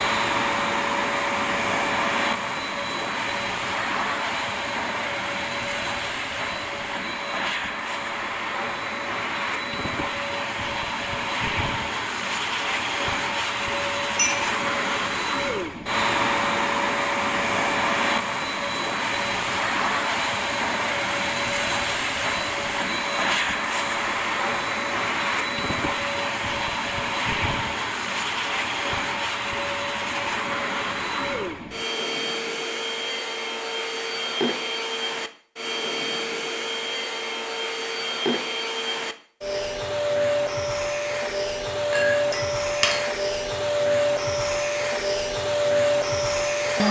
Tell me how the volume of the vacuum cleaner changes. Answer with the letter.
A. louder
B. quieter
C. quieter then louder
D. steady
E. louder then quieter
D.